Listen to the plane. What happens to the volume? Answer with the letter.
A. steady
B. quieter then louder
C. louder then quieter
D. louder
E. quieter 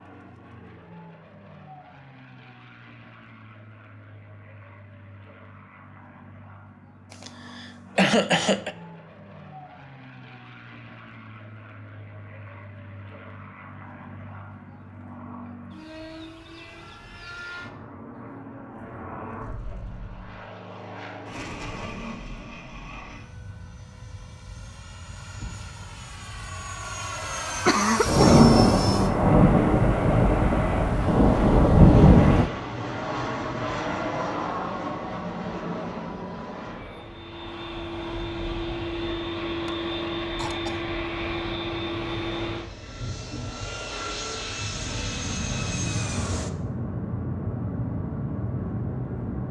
D.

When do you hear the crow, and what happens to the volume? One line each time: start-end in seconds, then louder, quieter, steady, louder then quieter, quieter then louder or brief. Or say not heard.
not heard.